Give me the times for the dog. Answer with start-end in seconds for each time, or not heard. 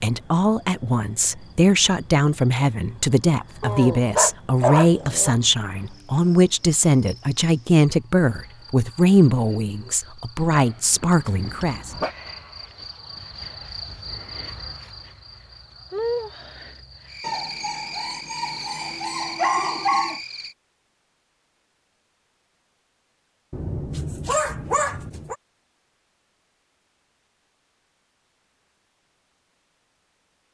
3.6-5.3, 10.5-12.2, 17.2-20.2, 23.5-25.4.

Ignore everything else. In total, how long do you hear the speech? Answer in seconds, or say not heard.
12 s.